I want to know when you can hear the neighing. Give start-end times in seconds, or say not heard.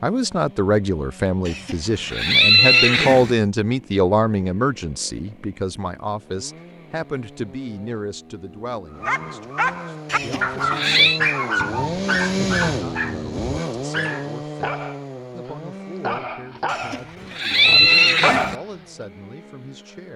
1.4-3.4, 10.1-11.2, 16.7-18.6.